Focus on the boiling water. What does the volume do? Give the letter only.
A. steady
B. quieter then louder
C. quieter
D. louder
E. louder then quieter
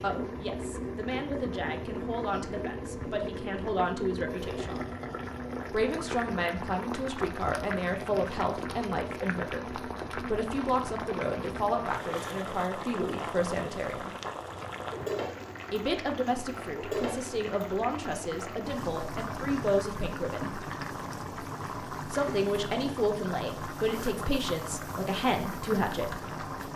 A.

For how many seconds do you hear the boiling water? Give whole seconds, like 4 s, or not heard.
27 s.